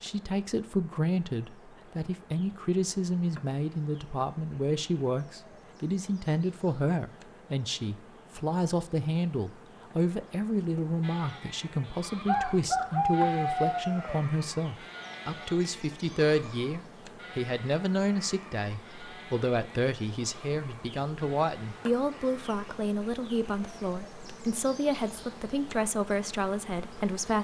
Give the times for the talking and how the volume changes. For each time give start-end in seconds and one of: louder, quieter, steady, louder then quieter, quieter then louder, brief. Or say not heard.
0.0-27.3 steady.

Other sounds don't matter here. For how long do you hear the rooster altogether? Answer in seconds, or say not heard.
2 s.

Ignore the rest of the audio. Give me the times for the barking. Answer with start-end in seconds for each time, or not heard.
not heard.